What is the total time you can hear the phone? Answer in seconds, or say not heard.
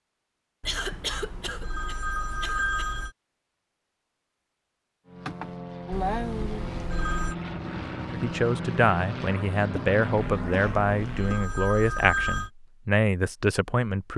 6 s.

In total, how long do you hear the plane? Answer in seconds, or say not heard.
6 s.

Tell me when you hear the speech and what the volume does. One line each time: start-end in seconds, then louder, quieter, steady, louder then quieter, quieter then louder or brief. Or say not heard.
8.1-14.1 steady.